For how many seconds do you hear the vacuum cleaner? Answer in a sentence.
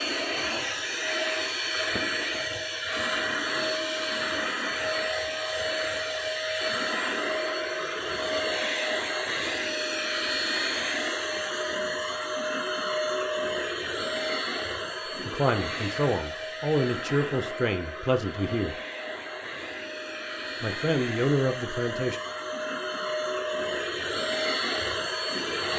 The vacuum cleaner can be heard for 26 seconds in total.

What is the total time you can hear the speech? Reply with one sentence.
You can hear the speech for 5 seconds altogether.